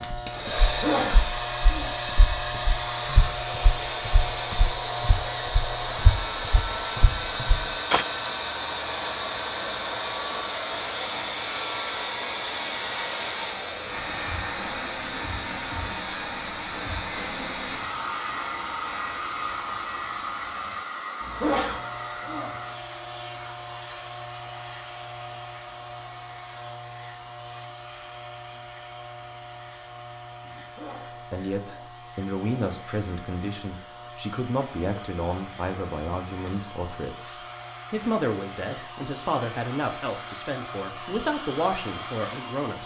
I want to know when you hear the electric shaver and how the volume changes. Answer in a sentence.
The electric shaver can be heard from 0.0 to 42.8 s, getting quieter.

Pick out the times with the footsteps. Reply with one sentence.
The footsteps can be heard from 0.0 to 8.1 s.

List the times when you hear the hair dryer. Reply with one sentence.
You can hear the hair dryer from 0.0 to 42.8 s.